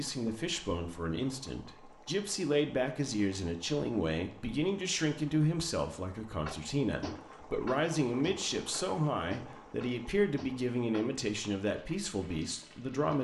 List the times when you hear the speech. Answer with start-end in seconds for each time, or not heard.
0.0-13.1.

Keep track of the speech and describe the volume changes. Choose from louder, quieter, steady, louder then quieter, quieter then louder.
steady.